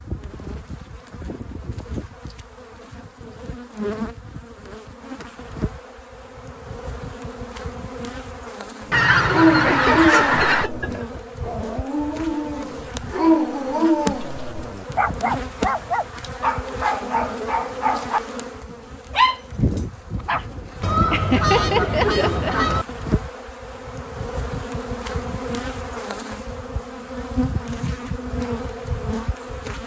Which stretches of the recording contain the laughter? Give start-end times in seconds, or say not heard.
9.6-11.2, 21.1-22.7.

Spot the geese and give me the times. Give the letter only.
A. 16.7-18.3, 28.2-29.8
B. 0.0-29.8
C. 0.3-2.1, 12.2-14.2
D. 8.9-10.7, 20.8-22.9
D.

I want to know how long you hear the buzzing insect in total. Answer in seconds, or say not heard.
30 s.